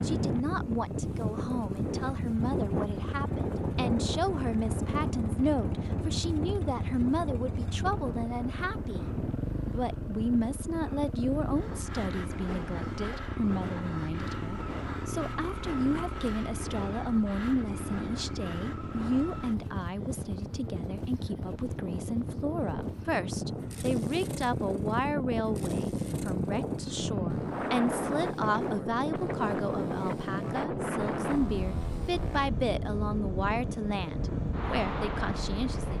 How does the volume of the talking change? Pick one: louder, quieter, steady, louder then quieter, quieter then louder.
steady.